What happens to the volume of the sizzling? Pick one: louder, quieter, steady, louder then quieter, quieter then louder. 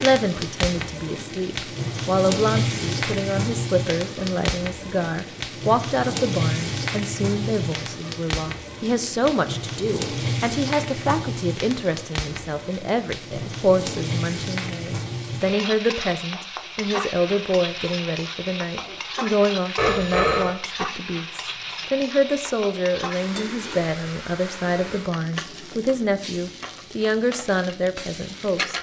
quieter.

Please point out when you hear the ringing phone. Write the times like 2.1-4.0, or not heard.
19.8-20.6.